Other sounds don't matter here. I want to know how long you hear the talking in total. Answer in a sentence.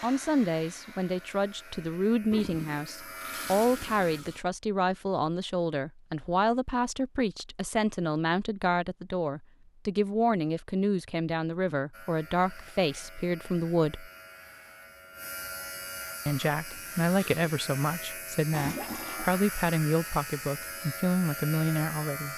You can hear the talking for 20 seconds altogether.